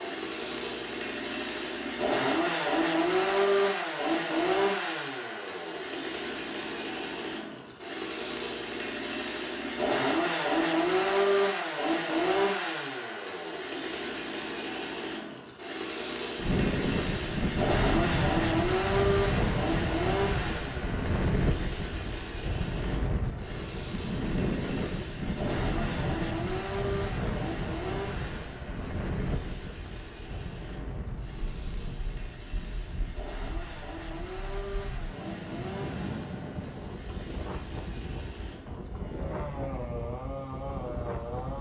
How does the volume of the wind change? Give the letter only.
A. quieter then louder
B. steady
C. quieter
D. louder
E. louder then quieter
C.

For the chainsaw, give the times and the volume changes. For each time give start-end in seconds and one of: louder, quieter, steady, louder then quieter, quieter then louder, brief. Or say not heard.
0.0-41.5 quieter.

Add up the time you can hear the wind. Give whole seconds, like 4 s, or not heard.
25 s.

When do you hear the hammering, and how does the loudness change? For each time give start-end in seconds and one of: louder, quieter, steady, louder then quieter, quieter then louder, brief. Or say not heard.
not heard.